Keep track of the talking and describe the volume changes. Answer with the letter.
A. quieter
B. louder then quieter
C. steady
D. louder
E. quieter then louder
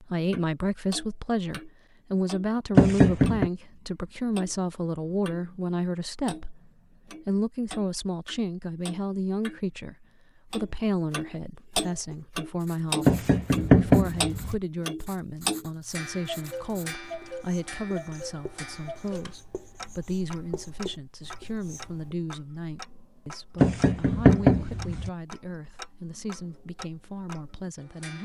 A.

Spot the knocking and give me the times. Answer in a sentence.
You can hear the knocking from 2.8 to 3.5 s, from 13.1 to 14.6 s and from 23.6 to 25.1 s.